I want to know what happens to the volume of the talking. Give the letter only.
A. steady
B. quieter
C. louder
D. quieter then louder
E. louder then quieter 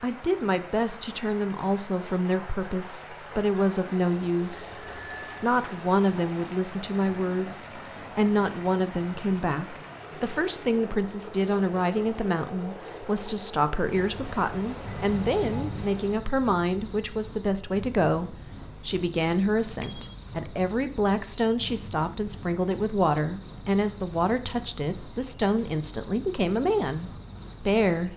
A.